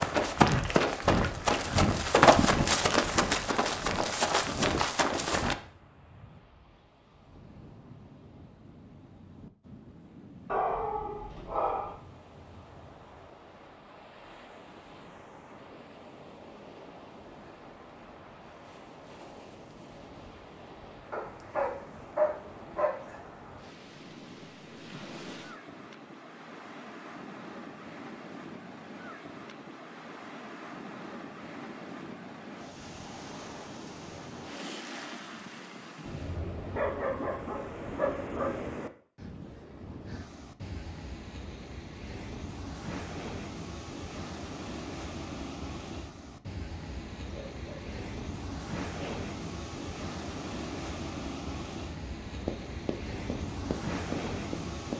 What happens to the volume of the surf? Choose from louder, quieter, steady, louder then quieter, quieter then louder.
louder.